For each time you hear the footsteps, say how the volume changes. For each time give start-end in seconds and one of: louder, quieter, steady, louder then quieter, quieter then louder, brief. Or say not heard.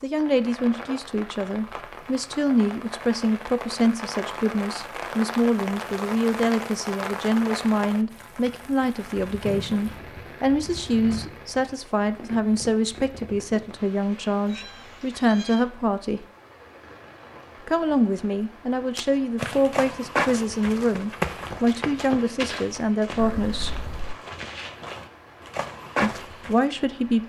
18.9-26.6 quieter then louder.